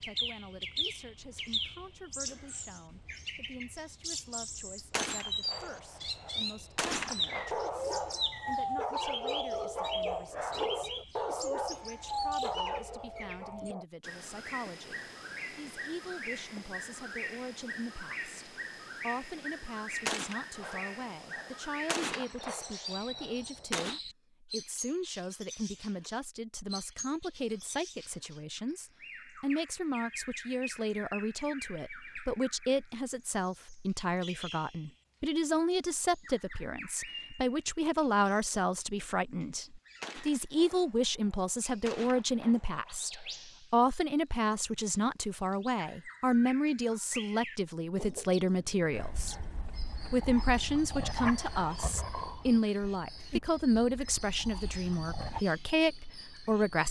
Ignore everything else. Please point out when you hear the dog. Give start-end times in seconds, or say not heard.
7.5-13.8, 48.9-55.4.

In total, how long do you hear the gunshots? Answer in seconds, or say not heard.
11 s.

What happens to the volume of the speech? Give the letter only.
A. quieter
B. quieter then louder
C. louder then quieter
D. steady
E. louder
E.